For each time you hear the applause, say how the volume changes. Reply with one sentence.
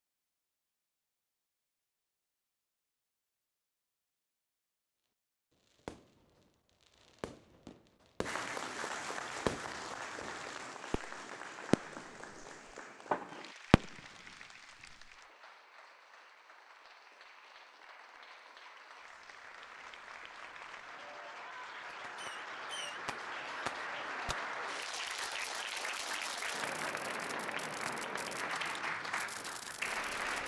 You can hear the applause from 8.2 to 30.4 s, getting quieter then louder.